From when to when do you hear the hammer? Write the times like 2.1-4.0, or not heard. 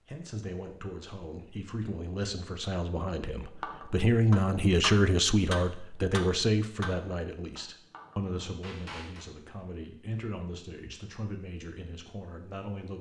3.6-9.2.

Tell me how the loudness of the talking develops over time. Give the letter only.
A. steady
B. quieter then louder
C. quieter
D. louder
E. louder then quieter
E.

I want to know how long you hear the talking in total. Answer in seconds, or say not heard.
13 s.